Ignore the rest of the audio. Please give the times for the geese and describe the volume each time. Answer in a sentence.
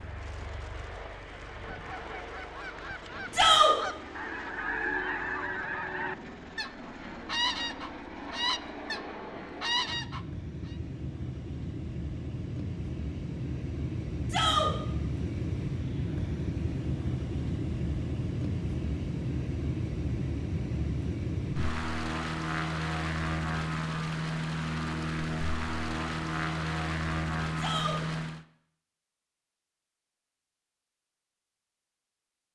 You can hear the geese from 1.5 to 10.8 s, getting louder.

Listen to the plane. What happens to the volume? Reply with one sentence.
The loudness of the plane goes up.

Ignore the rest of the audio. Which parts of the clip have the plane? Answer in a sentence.
You can hear the plane from 0.0 to 28.4 s.